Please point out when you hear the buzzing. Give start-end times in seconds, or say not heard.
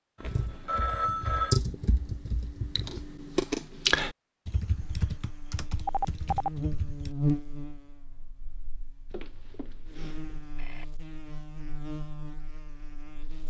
4.8-13.4.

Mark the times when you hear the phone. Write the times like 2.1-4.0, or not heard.
0.2-1.6, 5.8-6.5, 9.1-10.8.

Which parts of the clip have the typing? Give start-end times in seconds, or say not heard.
0.2-7.2.